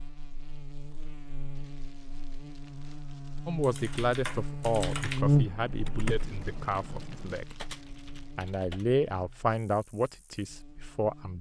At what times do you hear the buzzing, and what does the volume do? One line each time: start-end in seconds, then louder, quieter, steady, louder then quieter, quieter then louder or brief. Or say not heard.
0.0-11.3 louder then quieter.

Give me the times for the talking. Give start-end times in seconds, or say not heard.
3.5-7.5, 8.3-11.3.